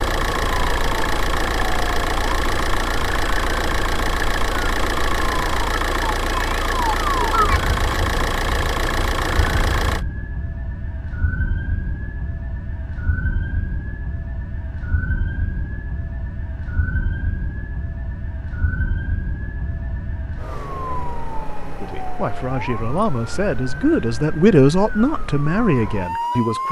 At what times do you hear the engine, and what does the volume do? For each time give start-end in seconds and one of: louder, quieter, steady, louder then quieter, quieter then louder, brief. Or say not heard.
0.0-10.1 steady.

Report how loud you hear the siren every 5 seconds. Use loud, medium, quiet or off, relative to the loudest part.
medium, loud, medium, medium, medium, loud.